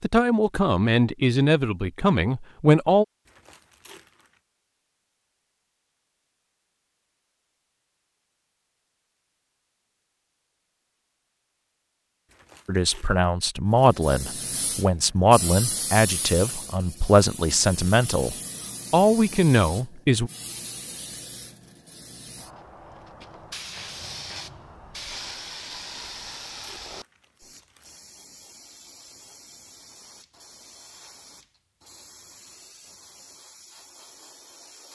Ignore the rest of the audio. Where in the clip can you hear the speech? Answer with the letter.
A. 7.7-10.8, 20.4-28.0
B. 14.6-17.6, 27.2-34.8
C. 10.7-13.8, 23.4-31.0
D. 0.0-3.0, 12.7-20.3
D.